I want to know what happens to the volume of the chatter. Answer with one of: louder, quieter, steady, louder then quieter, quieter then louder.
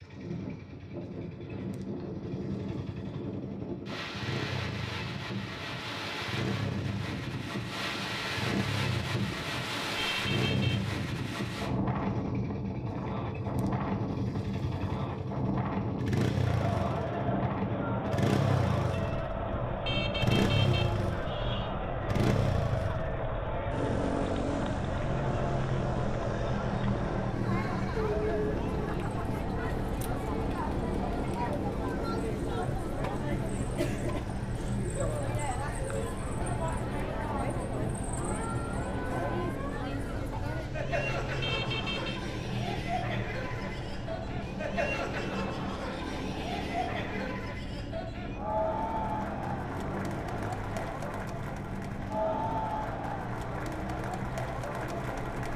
steady.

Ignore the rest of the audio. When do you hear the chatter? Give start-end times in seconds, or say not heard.
16.4-55.5.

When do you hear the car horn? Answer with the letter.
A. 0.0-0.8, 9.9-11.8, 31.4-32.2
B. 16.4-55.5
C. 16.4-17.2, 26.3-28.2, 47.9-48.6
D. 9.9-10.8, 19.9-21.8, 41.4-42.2
D.